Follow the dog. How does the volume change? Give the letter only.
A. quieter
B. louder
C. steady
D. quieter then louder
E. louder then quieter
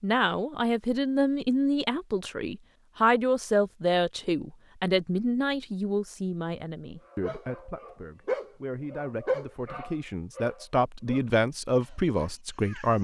A.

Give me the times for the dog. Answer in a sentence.
The dog can be heard from 7.1 to 12.9 s.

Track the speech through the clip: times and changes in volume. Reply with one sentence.
The speech can be heard from 0.0 to 12.9 s, getting quieter then louder.